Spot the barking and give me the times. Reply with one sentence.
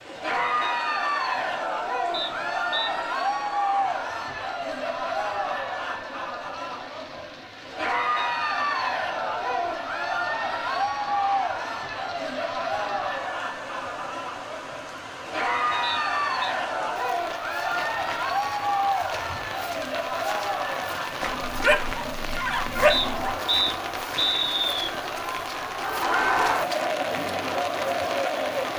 You can hear the barking from 21.2 to 23.4 s.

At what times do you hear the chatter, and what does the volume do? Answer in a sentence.
The chatter can be heard from 0.0 to 28.7 s, at a steady volume.